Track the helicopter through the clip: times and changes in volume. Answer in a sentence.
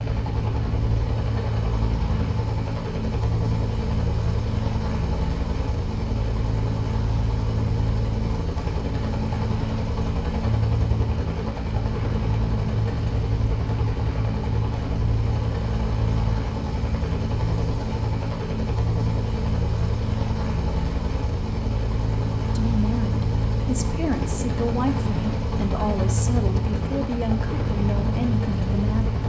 You can hear the helicopter from 0.0 to 29.2 s, at a steady volume.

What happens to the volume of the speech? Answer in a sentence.
The loudness of the speech stays about the same.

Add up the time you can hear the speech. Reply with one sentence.
The speech can be heard for 7 seconds in total.